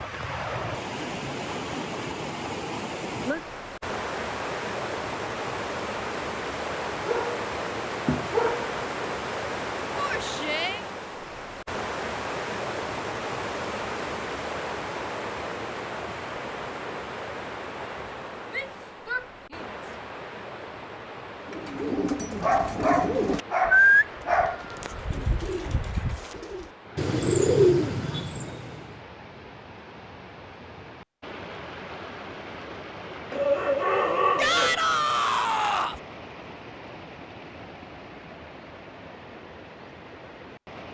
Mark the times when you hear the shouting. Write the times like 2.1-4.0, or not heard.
9.9-10.8, 18.5-19.8, 34.4-36.0.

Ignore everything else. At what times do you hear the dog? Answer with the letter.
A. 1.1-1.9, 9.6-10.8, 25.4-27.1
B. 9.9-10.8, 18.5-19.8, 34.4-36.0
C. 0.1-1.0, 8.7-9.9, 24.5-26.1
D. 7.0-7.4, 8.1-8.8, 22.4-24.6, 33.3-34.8
D.